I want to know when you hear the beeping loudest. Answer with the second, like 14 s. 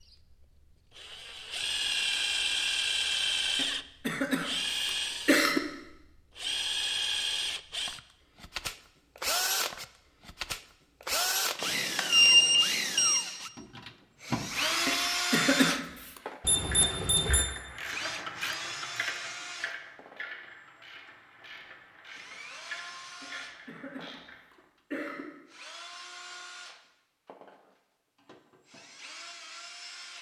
12 s.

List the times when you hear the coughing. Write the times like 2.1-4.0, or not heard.
3.5-5.6, 14.8-16.2, 23.2-25.2.